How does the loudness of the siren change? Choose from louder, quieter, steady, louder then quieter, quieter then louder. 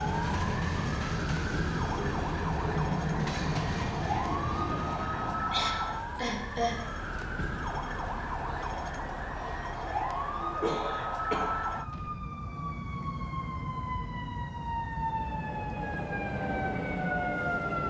steady.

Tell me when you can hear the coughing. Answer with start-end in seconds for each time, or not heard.
5.5-6.9, 10.6-12.2.